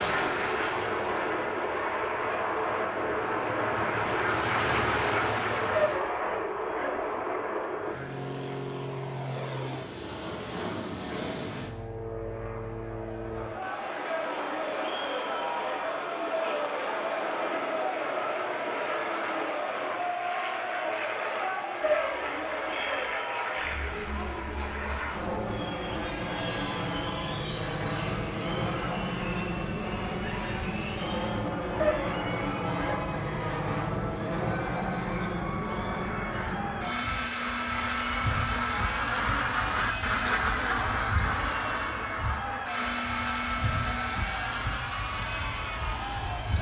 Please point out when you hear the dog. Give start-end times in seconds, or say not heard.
5.8-7.0, 21.8-23.1, 31.8-33.0.